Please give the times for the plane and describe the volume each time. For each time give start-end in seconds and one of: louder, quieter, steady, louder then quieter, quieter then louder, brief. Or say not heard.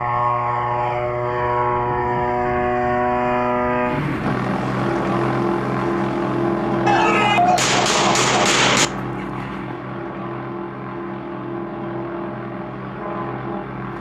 0.0-13.9 quieter.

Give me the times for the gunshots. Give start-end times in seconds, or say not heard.
6.8-8.9.